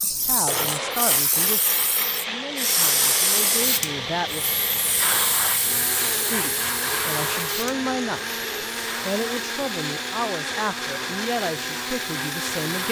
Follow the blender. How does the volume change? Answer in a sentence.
The loudness of the blender stays about the same.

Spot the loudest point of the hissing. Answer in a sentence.
The volume of the hissing peaks at 3 seconds.